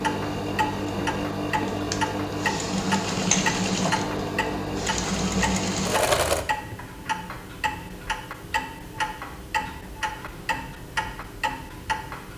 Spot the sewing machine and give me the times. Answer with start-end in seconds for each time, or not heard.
0.0-6.5.